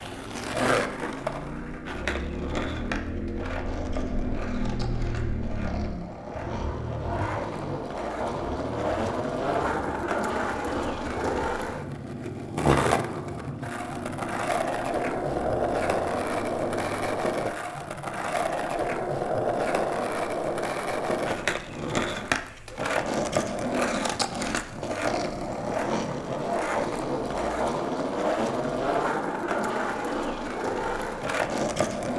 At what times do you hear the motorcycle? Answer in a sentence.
The motorcycle can be heard from 0.0 to 17.1 s.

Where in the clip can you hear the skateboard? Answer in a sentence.
You can hear the skateboard from 0.0 to 32.1 s.